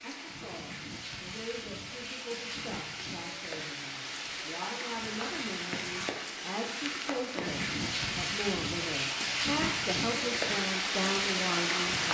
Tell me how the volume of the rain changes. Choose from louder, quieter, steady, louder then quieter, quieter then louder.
louder.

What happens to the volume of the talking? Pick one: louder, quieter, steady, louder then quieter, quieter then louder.
louder.